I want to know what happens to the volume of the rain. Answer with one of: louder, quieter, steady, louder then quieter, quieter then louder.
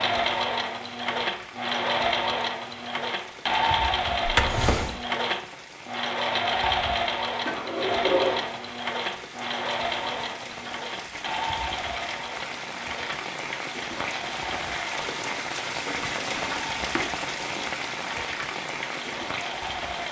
louder.